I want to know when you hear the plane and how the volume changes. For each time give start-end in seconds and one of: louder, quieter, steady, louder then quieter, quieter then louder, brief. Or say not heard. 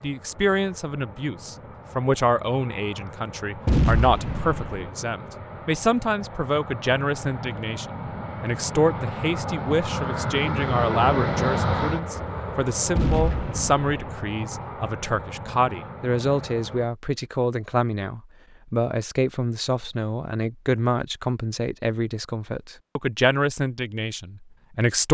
0.0-16.9 louder then quieter.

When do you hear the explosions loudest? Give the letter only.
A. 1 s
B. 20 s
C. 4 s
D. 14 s
C.